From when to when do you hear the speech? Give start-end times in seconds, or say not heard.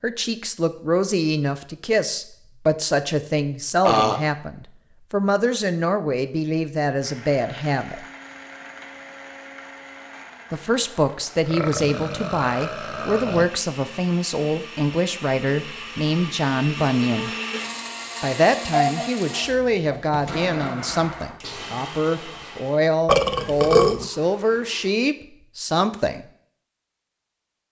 0.0-8.1, 10.5-17.3, 18.2-26.2.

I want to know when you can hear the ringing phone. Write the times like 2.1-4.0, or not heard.
not heard.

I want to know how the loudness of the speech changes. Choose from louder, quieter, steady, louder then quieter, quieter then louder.
steady.